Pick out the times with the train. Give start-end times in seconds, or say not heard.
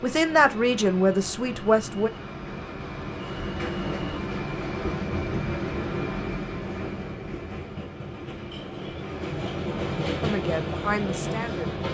0.0-11.8.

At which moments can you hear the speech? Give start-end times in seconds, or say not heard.
0.0-2.1, 10.2-11.7.